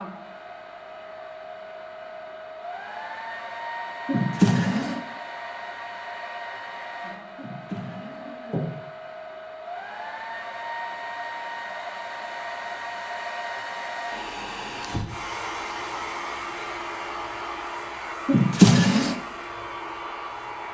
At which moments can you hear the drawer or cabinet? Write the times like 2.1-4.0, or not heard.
4.0-5.0, 7.3-8.7, 18.2-19.1.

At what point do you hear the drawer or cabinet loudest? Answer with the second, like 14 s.
19 s.